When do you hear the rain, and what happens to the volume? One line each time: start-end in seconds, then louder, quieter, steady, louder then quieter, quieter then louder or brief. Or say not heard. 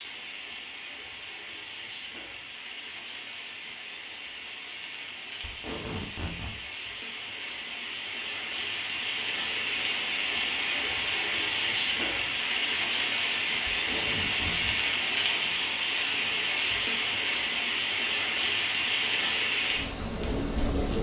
0.0-20.9 louder.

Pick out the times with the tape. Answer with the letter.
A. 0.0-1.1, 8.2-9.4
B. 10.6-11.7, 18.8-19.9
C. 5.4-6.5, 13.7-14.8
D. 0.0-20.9
C.